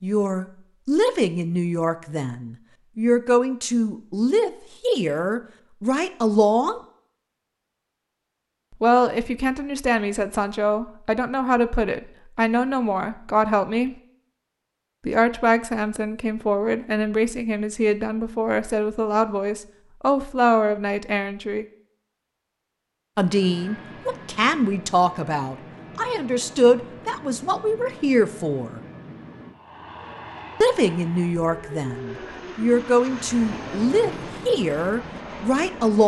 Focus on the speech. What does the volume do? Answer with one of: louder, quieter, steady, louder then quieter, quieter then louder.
steady.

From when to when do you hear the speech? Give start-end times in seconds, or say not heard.
0.0-6.8, 8.8-13.9, 15.1-21.6, 23.1-28.8, 30.6-36.0.